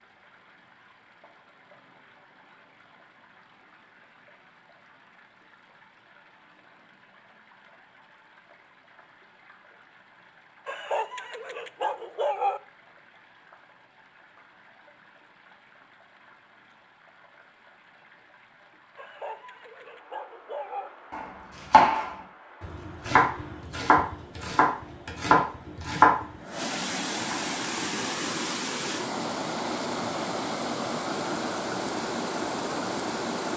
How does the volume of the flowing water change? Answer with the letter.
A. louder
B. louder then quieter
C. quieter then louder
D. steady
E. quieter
A.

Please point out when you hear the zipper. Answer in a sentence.
The zipper can't be heard in this clip.